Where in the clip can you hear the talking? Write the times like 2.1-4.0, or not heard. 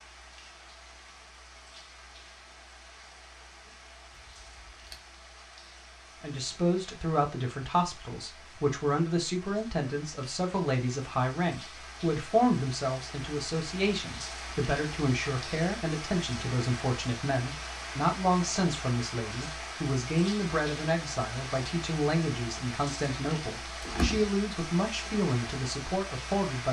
6.2-26.6.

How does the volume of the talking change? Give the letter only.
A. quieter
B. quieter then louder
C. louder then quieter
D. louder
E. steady
E.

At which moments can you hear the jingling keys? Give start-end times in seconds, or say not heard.
4.2-5.0, 23.8-24.3.